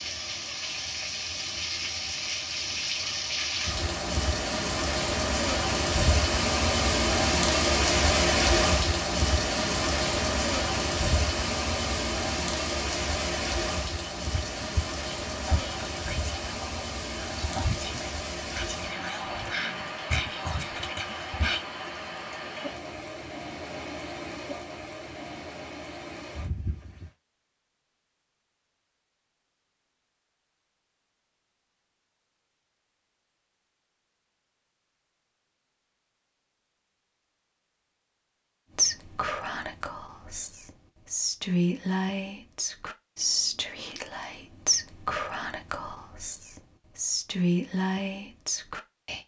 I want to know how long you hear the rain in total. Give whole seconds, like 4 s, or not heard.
27 s.